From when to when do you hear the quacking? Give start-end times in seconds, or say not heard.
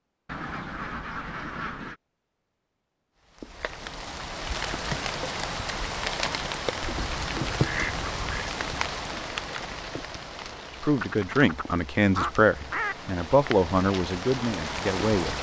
0.2-1.9, 6.9-8.5, 11.0-12.9.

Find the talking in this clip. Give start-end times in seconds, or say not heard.
10.7-15.3.